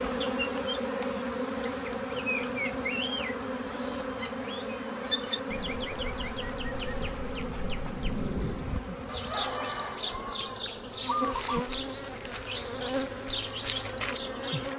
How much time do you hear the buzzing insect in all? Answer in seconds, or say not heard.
15 s.